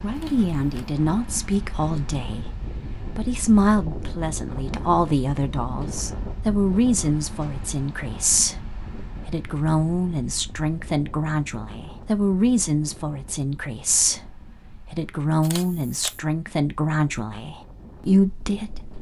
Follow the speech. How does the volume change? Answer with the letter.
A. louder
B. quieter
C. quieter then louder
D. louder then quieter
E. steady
E.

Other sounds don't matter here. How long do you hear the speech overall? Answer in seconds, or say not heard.
19 s.